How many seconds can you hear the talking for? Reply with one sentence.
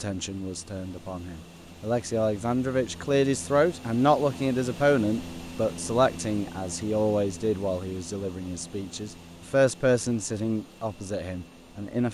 The talking can be heard for 12 seconds in total.